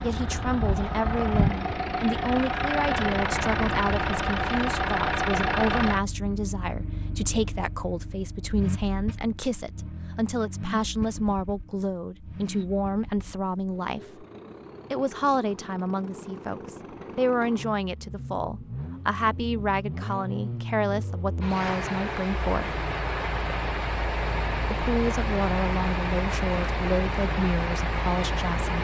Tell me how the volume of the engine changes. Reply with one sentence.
The volume of the engine goes down, then up.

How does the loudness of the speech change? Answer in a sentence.
The volume of the speech stays about the same.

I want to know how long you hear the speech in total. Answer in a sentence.
You can hear the speech for 26 seconds altogether.